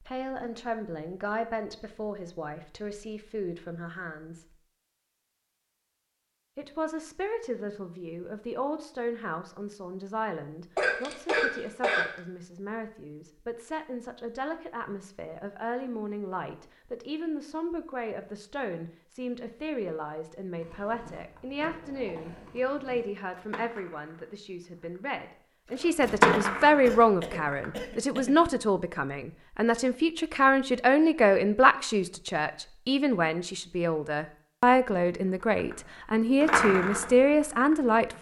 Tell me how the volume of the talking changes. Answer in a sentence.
The loudness of the talking goes up.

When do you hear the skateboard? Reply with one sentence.
You can hear the skateboard from 20.6 to 27.6 s and from 35.5 to 38.1 s.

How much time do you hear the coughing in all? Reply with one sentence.
You can hear the coughing for 3 seconds altogether.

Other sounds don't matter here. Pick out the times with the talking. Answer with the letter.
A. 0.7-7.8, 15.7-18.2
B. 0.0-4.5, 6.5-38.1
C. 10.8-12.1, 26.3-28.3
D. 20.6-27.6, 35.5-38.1
B.